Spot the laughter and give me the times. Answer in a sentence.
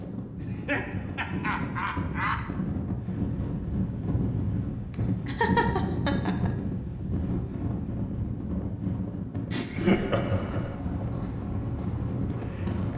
You can hear the laughter from 0.3 to 2.4 s, from 5.2 to 6.5 s and from 9.5 to 10.8 s.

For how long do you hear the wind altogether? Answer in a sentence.
The wind can be heard for 13 seconds in total.